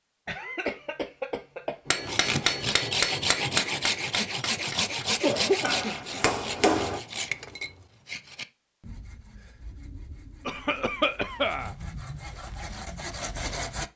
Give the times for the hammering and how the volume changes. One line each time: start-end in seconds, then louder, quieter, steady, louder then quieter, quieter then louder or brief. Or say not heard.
1.9-7.0 quieter then louder.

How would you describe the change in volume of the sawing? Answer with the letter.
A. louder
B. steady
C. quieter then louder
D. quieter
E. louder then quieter
C.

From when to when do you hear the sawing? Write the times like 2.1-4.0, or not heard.
2.0-13.9.